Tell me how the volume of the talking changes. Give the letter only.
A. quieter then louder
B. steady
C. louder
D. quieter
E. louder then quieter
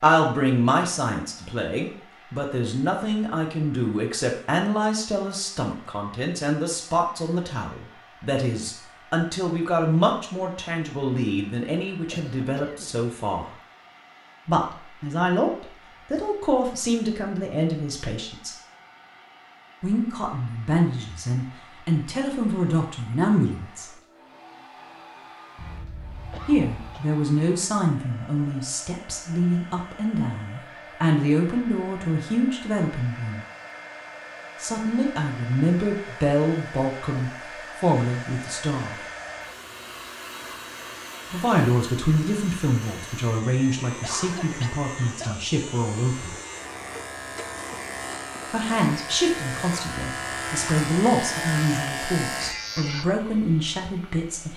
B.